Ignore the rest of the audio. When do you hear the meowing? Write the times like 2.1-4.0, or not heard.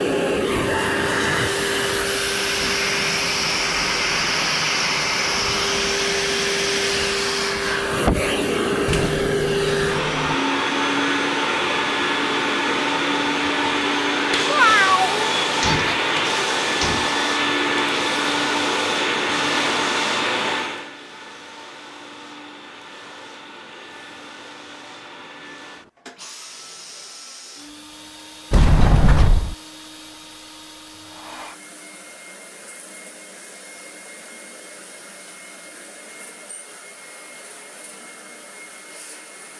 14.4-15.9.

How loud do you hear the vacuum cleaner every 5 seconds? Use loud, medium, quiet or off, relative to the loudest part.
loud, loud, loud, loud, medium, quiet, quiet, quiet.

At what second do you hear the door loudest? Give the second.
29 s.